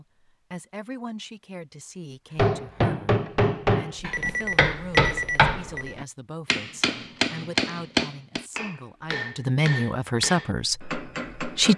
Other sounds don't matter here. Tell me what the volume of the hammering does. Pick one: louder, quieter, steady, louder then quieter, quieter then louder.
quieter.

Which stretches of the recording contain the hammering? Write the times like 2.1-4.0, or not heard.
2.4-11.7.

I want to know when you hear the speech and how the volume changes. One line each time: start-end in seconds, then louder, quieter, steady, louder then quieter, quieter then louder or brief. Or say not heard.
0.0-11.7 louder.